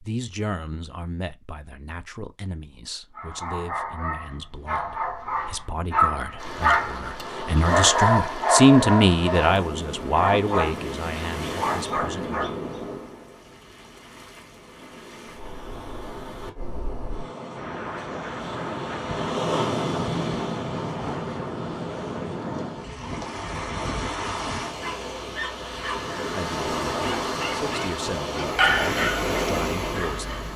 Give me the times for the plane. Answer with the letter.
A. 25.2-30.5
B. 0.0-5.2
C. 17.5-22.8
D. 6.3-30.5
C.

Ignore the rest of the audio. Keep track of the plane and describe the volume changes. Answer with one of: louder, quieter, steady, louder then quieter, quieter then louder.
steady.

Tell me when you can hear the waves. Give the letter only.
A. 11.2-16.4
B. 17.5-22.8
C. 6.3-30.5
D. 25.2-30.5
C.